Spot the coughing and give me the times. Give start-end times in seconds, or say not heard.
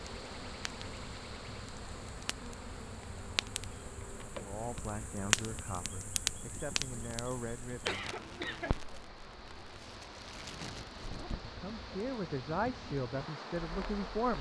7.8-8.8.